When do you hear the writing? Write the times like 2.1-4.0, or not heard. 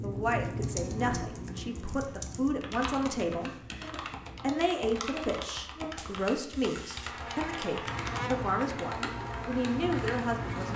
0.0-4.5, 7.8-10.7.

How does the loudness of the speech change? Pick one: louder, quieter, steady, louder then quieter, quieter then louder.
steady.